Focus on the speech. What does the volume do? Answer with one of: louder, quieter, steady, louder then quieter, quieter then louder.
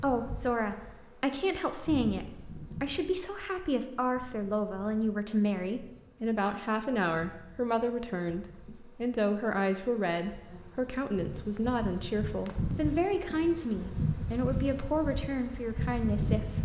steady.